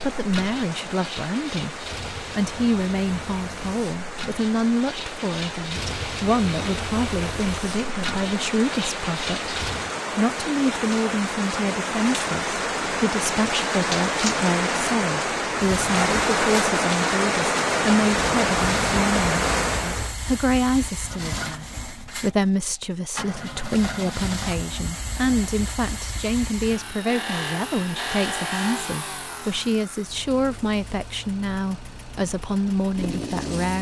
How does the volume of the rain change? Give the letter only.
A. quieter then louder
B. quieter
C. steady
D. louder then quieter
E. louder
E.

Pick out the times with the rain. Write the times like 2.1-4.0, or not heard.
0.0-20.1.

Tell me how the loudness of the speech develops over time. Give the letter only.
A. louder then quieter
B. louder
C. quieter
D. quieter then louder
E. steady
E.